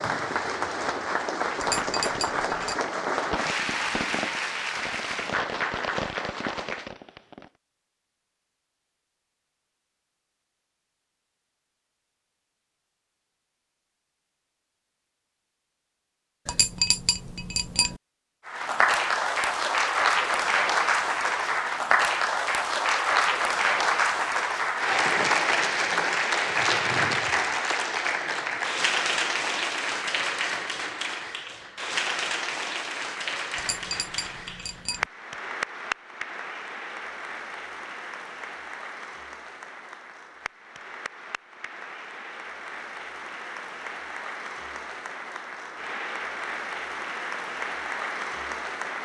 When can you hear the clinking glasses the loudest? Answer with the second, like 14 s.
17 s.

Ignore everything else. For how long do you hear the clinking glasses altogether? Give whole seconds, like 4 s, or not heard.
4 s.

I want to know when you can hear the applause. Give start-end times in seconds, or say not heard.
0.0-6.9, 18.4-49.0.